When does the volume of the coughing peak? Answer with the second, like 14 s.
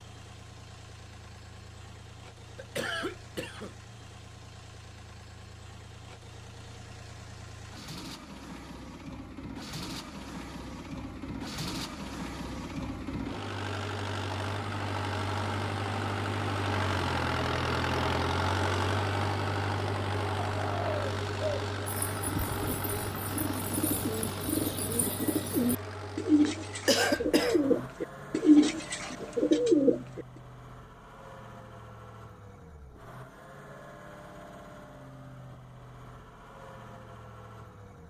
27 s.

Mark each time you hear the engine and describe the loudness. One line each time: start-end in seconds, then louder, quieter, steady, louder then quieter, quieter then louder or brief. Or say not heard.
0.0-38.0 louder then quieter.